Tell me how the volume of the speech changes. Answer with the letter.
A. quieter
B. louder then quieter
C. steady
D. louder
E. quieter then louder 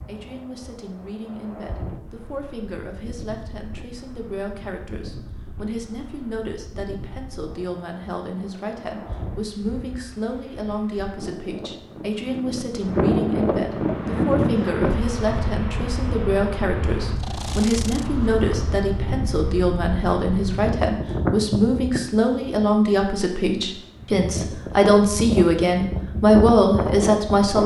D.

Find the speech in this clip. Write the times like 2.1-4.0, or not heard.
0.1-27.6.